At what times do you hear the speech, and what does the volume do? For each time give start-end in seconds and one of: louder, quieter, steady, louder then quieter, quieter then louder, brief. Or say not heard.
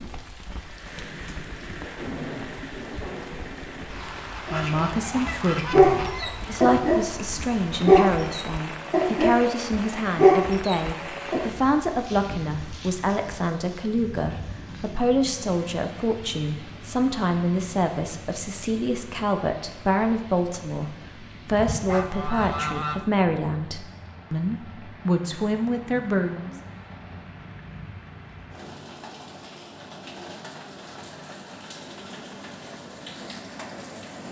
4.5-26.6 steady.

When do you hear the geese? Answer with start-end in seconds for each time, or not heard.
4.5-6.3, 21.5-23.1.